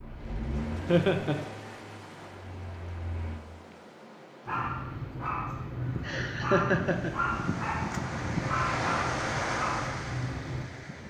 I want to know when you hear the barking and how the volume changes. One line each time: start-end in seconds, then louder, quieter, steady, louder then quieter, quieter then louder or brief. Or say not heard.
4.5-10.7 steady.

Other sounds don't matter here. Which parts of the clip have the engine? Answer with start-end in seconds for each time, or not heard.
0.0-3.5.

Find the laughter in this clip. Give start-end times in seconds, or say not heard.
0.8-1.4, 6.0-7.2.